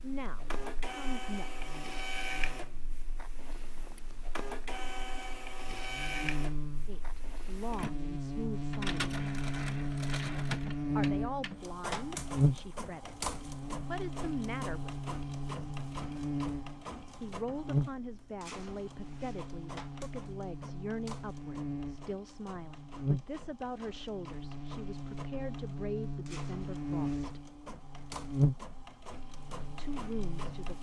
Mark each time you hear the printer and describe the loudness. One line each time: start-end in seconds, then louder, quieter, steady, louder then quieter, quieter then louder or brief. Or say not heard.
0.0-30.7 quieter.